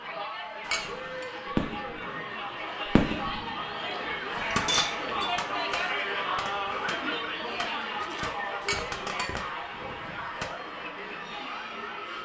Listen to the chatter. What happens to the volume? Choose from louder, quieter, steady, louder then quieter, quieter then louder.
louder then quieter.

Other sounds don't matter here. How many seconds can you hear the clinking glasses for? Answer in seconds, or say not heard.
3 s.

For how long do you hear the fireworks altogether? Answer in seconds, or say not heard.
8 s.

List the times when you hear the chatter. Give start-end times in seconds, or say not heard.
0.0-12.2.